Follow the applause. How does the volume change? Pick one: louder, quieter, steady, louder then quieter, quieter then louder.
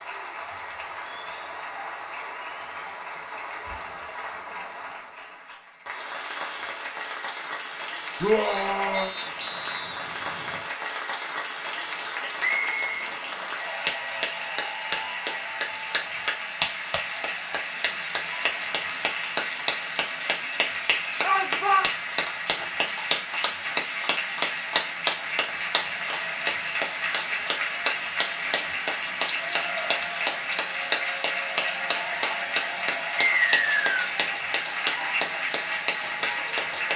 louder.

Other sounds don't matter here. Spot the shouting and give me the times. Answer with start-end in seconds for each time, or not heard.
8.2-9.1, 21.2-21.9.